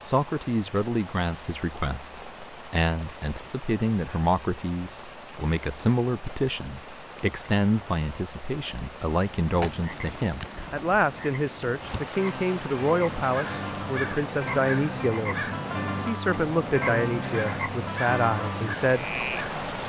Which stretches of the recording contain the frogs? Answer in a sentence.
You can hear the frogs from 9.4 to 19.8 s.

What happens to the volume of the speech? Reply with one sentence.
The volume of the speech stays about the same.